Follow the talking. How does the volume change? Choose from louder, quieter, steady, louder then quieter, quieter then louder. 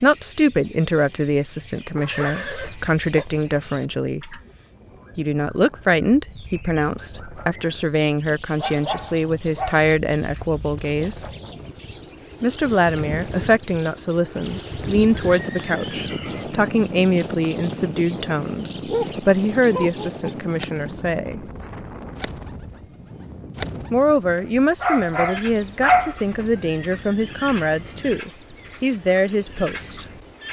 steady.